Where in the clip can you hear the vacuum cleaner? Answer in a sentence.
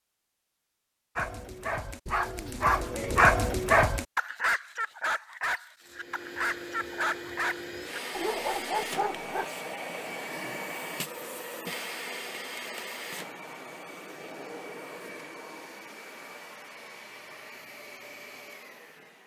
The vacuum cleaner can be heard from 5.8 to 19.2 s.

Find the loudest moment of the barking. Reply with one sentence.
The volume of the barking peaks at 3 seconds.